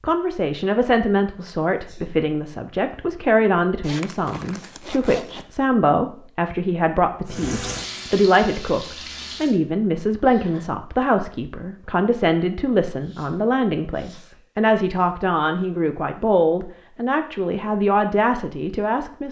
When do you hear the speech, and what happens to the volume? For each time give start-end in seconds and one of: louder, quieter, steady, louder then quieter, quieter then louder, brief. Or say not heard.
0.0-19.2 steady.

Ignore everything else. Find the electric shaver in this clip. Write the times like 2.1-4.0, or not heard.
not heard.